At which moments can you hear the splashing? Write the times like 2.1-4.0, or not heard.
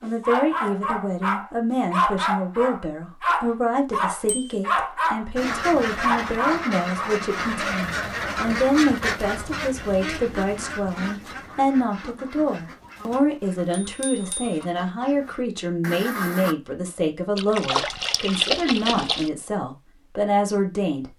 17.4-19.3.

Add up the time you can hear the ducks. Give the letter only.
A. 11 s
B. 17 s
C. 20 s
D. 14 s
A.